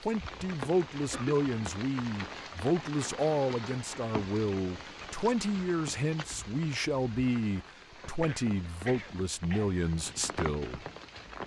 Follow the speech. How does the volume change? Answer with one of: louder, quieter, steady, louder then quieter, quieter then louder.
steady.